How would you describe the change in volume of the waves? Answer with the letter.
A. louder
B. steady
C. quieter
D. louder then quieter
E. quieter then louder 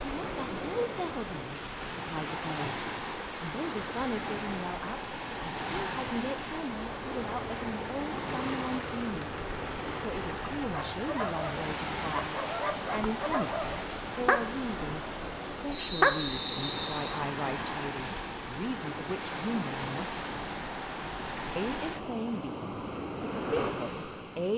B.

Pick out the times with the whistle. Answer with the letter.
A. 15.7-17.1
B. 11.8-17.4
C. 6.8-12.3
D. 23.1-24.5
A.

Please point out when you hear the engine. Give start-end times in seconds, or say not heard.
6.8-12.3.